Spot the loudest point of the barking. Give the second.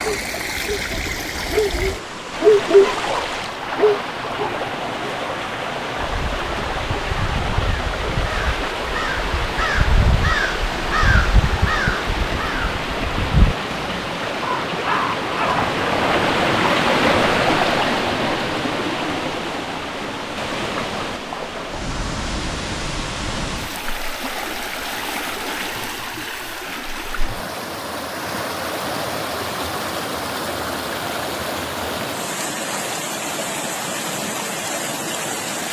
3 s.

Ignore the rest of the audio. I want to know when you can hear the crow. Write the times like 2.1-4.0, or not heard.
6.0-15.7.